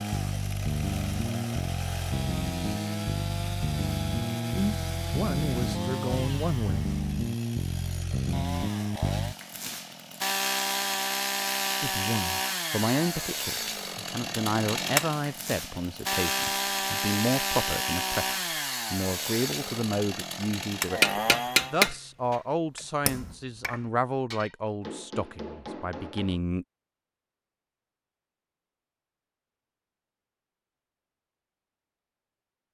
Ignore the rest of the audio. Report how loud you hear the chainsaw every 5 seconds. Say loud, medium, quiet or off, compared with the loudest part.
loud, loud, loud, loud, loud, off, off.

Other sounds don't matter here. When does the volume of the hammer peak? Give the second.
22 s.